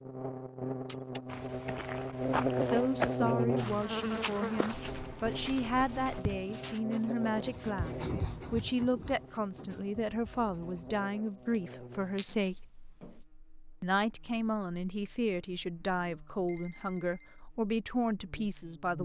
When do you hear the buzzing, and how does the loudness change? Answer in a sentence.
You can hear the buzzing from 0.0 to 18.9 s, getting quieter.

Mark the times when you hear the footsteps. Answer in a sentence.
You can hear the footsteps from 1.2 to 6.8 s.